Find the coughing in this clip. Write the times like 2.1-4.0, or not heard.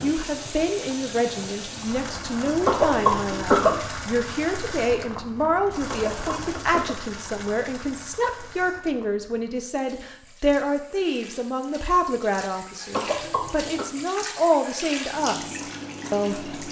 2.6-3.8, 5.8-7.0, 12.9-13.8.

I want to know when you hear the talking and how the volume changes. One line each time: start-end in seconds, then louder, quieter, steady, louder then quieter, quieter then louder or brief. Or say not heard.
0.0-16.6 steady.